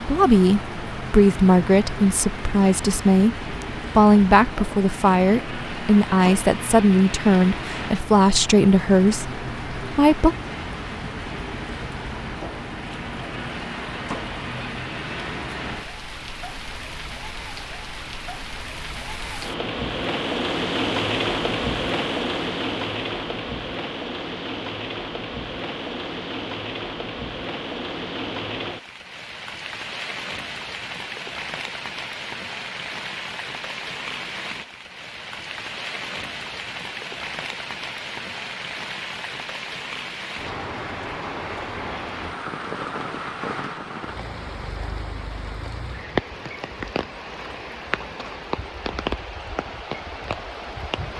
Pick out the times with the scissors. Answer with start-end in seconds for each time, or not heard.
not heard.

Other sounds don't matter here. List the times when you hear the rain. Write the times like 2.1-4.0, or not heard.
0.0-51.1.